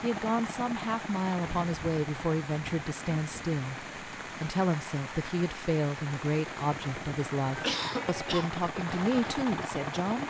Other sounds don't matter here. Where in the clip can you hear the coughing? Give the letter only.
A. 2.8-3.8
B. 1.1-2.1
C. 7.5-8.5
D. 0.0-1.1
C.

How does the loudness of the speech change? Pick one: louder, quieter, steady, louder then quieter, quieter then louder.
steady.